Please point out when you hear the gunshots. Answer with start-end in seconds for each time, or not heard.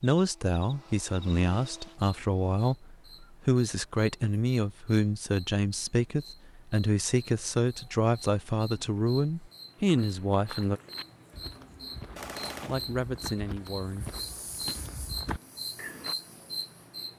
12.2-12.8.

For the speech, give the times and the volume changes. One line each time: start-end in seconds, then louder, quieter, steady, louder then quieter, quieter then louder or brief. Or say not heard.
0.0-10.8 steady
12.7-14.1 brief.